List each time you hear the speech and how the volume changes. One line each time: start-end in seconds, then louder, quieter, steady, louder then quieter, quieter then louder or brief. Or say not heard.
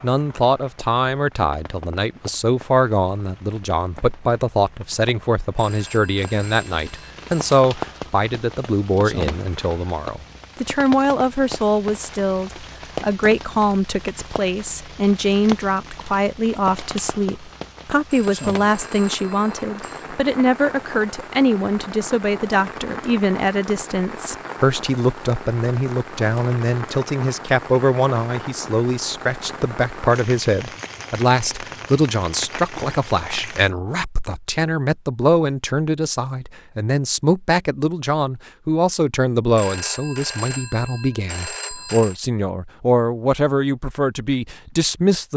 0.0-45.3 steady.